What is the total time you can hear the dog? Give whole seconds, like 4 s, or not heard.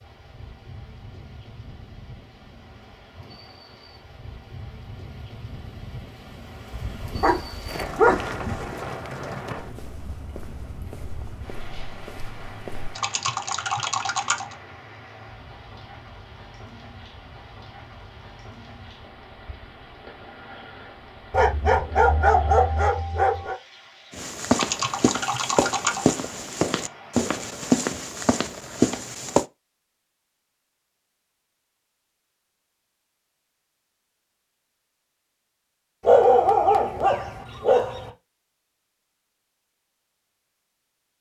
6 s.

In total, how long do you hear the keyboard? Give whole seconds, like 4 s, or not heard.
3 s.